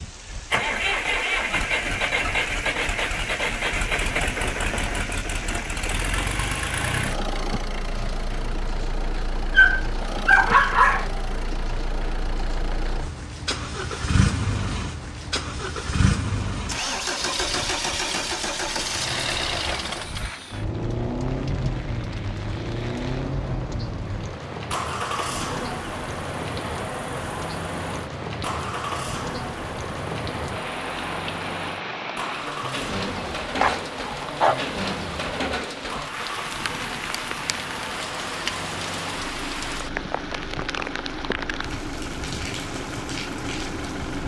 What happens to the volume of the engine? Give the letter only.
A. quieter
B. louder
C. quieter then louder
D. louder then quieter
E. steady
A.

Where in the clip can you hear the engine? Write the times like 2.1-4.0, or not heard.
0.0-44.2.